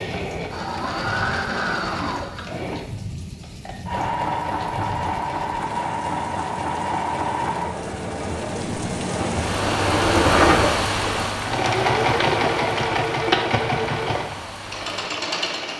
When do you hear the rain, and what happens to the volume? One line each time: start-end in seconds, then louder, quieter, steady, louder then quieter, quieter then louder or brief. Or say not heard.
0.0-15.7 louder then quieter.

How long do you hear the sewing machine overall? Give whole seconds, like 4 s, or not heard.
16 s.